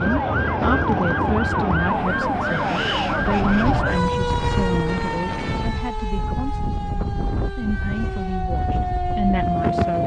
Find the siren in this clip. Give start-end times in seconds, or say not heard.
0.0-10.0.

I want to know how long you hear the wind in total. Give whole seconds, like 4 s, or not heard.
10 s.